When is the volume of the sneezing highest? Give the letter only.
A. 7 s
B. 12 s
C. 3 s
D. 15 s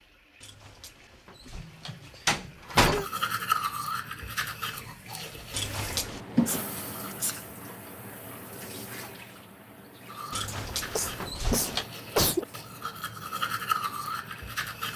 B.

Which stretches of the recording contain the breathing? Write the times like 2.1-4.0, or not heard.
not heard.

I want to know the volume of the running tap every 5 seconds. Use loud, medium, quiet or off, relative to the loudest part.
quiet, loud, medium.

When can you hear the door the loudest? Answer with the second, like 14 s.
3 s.